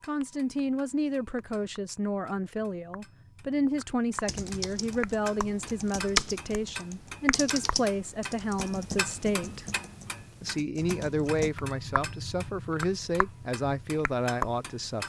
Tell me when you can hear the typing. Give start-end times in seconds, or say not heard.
4.2-11.5.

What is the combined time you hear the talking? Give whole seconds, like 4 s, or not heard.
14 s.